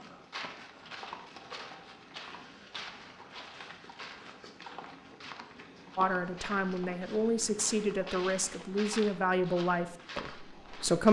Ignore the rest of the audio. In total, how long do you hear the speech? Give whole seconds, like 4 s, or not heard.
5 s.